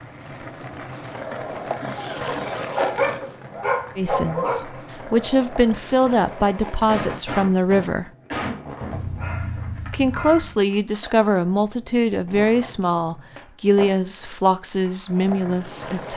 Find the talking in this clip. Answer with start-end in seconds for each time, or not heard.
4.0-8.1, 9.9-16.1.